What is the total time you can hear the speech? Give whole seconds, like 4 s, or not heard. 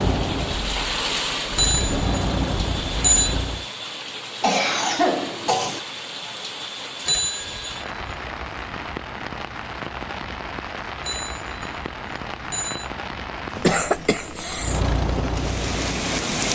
not heard.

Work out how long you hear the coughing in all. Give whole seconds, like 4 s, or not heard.
3 s.